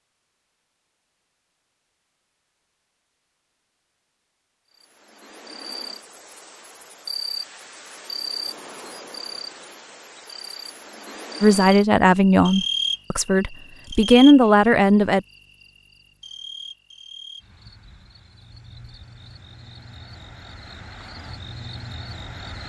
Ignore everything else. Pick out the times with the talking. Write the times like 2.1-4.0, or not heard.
11.4-15.2.